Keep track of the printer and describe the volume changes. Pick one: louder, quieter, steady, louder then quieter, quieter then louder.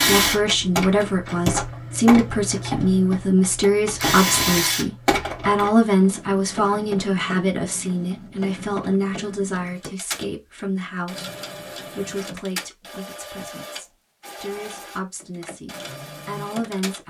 quieter.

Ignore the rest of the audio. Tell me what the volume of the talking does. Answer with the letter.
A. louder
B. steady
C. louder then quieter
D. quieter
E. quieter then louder
D.